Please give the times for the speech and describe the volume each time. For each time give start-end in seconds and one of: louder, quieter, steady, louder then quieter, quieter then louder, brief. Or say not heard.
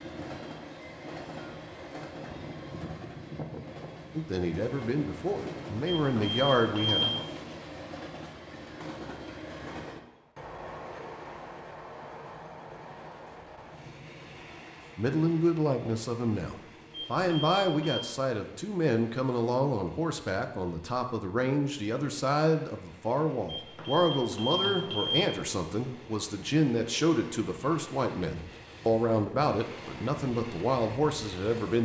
4.2-7.0 brief
14.9-31.8 steady.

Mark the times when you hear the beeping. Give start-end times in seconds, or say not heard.
6.0-7.3, 16.9-18.1, 23.4-25.3.